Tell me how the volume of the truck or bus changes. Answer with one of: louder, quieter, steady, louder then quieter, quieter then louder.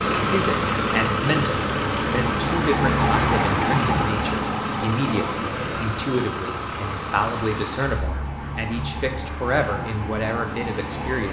quieter.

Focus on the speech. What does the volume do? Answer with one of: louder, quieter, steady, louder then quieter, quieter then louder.
steady.